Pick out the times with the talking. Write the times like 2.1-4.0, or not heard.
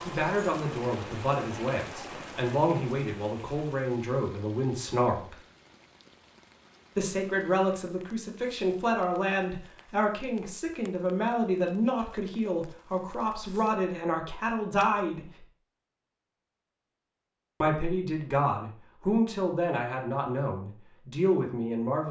0.0-5.3, 7.0-15.4, 17.6-22.0.